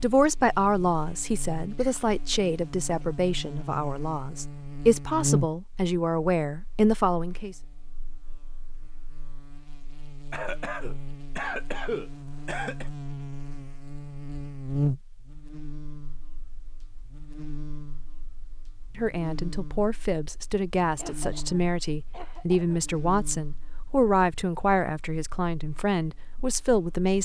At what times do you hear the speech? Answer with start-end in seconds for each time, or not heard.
0.0-7.5, 18.9-27.1.